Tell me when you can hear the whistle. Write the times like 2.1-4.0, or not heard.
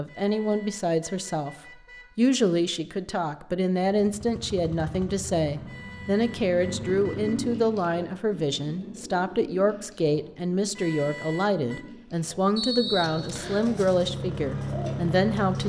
12.6-13.7.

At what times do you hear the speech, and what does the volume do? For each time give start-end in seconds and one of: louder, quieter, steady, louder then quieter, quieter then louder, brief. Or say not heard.
0.0-15.6 steady.